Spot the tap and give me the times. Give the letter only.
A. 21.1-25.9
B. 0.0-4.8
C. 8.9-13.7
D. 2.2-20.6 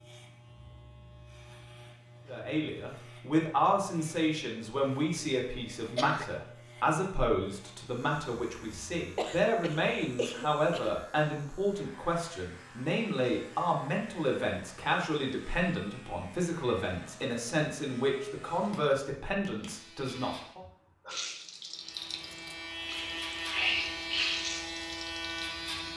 A.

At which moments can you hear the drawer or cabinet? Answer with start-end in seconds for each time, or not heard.
not heard.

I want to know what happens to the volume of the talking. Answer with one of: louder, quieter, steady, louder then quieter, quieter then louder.
steady.